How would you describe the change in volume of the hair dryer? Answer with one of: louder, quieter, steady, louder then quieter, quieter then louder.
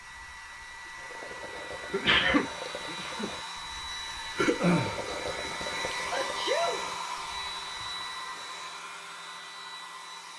louder then quieter.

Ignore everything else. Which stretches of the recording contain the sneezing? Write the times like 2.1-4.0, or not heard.
1.9-3.3, 6.1-6.8.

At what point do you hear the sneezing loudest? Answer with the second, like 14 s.
2 s.